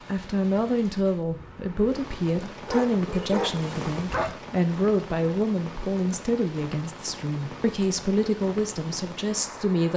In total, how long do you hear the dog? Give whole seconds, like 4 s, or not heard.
2 s.